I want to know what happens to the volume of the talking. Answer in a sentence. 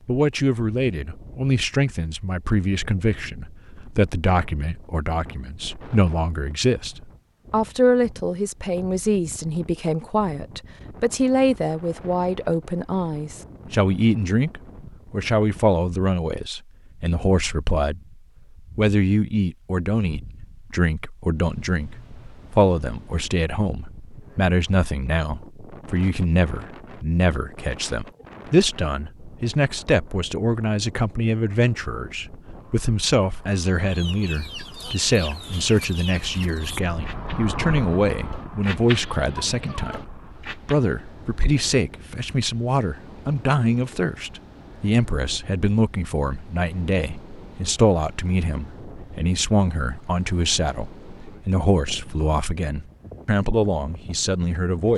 The loudness of the talking stays about the same.